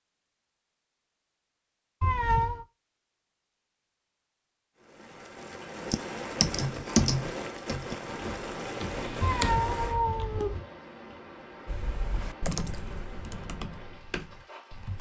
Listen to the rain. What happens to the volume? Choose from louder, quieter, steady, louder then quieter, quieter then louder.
quieter.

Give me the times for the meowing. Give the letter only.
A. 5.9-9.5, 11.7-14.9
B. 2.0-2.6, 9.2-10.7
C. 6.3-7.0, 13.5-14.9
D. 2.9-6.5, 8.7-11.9
B.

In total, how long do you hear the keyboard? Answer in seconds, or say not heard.
7 s.